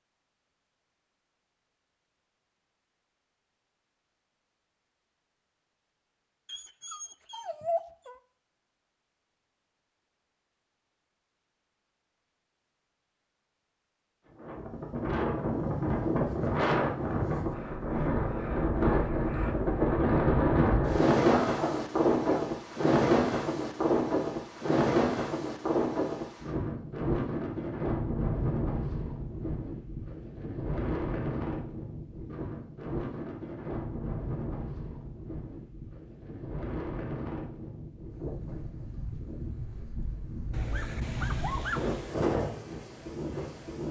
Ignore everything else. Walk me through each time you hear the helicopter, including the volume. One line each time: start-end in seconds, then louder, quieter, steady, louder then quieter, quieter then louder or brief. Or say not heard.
not heard.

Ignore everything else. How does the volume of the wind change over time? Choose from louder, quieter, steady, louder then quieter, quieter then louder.
quieter.